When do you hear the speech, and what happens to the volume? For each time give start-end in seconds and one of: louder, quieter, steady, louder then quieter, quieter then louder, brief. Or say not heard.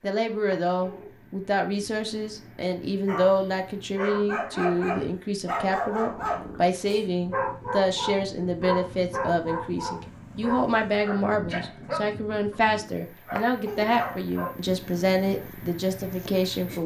0.0-16.8 steady.